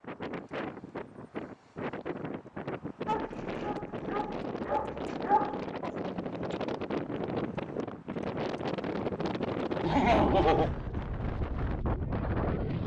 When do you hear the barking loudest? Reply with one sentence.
The volume of the barking peaks at 5 seconds.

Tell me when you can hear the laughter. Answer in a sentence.
You can hear the laughter from 9.8 to 10.7 s.